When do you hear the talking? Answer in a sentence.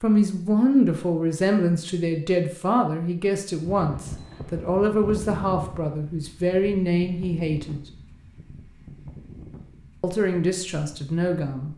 You can hear the talking from 0.0 to 7.8 s and from 10.0 to 11.7 s.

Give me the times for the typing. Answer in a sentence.
You can't hear the typing here.